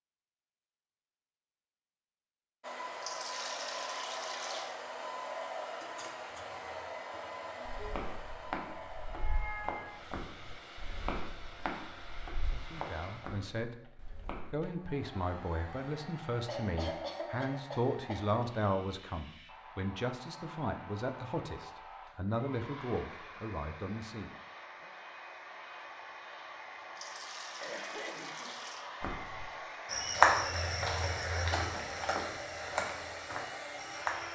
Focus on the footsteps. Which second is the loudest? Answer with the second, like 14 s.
30 s.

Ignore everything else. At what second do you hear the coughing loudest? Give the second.
17 s.